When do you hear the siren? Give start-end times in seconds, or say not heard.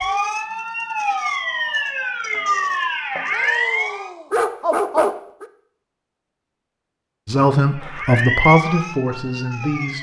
0.0-4.1, 7.6-9.9.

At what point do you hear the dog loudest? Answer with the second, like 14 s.
5 s.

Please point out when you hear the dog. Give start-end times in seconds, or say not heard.
3.3-5.5.